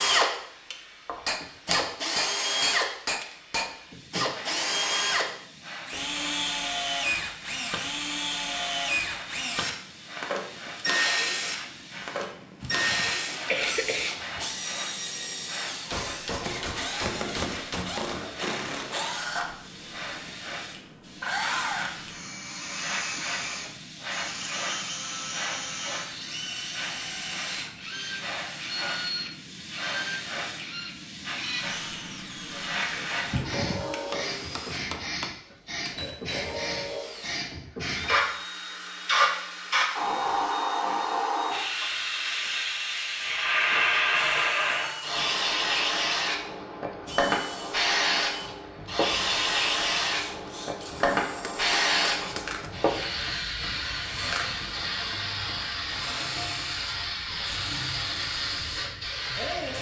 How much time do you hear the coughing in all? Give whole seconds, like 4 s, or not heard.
3 s.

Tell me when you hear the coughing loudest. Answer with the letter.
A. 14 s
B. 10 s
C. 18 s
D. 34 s
A.